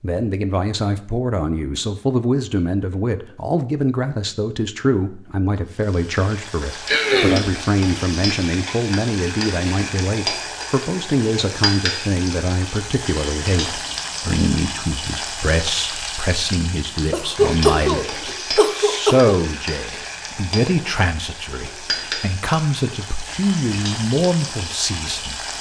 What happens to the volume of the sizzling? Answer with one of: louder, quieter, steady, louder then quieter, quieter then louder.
steady.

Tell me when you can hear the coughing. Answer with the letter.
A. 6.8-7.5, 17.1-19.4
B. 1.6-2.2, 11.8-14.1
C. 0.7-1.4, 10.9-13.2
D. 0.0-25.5
A.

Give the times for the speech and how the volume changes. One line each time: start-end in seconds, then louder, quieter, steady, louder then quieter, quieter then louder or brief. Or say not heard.
0.0-25.5 steady.